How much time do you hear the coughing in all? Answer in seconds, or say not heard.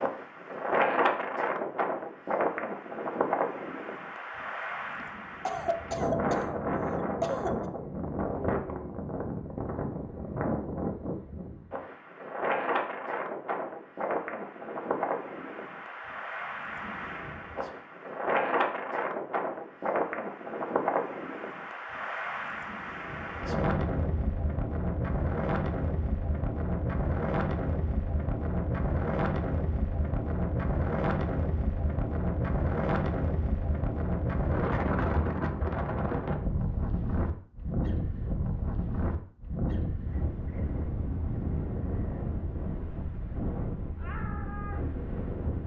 3 s.